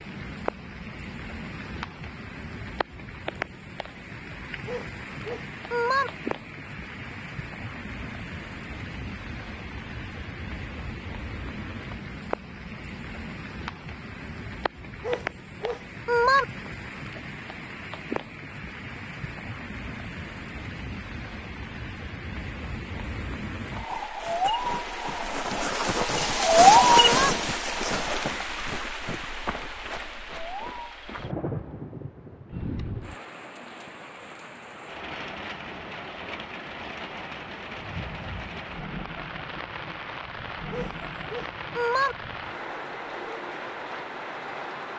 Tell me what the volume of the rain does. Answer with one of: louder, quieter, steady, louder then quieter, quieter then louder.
louder then quieter.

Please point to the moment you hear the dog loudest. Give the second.
16 s.